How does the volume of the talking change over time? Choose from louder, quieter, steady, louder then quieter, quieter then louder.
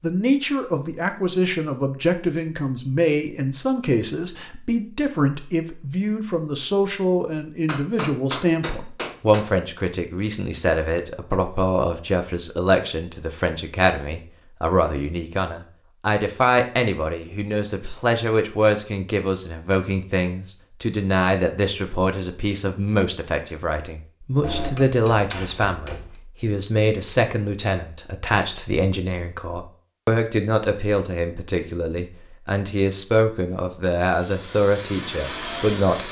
steady.